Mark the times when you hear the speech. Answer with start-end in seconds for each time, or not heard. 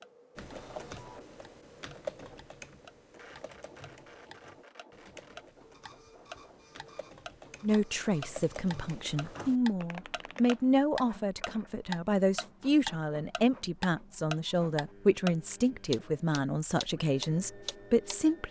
7.6-18.4.